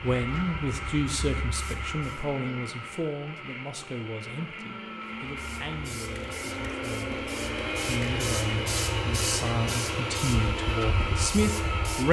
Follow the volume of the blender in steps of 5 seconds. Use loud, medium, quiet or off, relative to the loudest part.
medium, loud, loud.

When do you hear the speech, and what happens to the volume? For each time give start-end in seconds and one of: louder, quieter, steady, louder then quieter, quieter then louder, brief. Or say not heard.
0.0-12.0 quieter then louder.